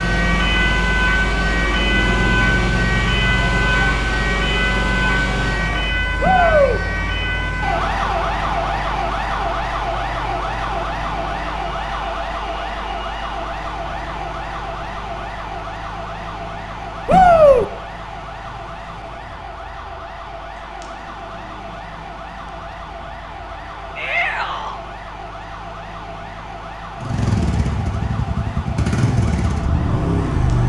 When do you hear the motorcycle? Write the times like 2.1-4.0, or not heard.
26.9-30.6.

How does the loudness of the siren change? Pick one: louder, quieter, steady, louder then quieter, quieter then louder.
quieter.